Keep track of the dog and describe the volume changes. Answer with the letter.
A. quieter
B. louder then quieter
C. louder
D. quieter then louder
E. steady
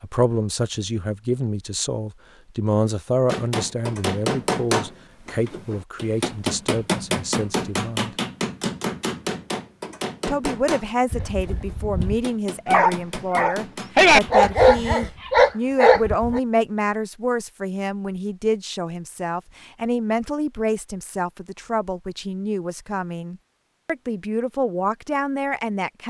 C.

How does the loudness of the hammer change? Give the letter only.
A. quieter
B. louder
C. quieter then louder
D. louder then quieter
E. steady
A.